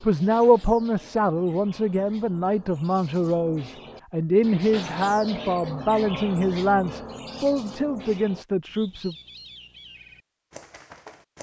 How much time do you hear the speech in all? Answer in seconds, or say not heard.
9 s.